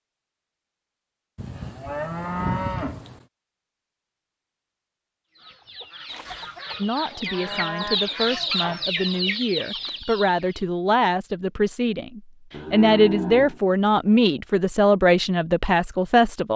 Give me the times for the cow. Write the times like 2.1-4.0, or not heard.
1.4-3.2, 6.0-8.0, 12.5-14.2.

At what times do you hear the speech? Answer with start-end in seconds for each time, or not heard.
6.8-16.5.